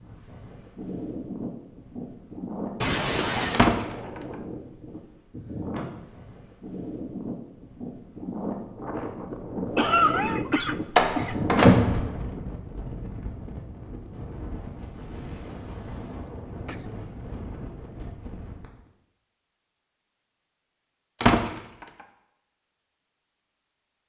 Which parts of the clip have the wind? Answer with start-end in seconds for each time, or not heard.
0.0-18.9.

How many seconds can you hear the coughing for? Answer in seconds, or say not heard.
3 s.